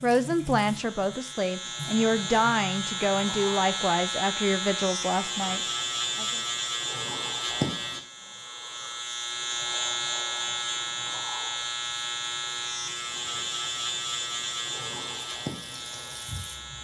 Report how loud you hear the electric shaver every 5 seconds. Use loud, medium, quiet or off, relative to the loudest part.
loud, loud, loud, medium.